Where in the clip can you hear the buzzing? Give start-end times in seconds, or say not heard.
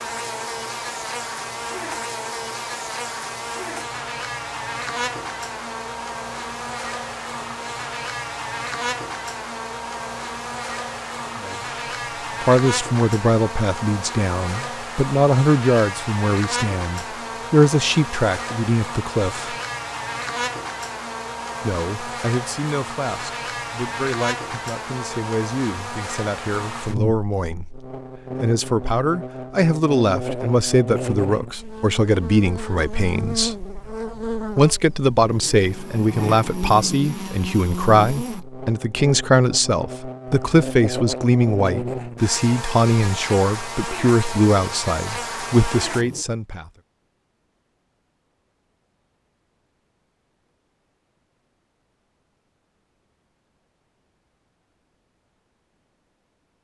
0.0-46.2.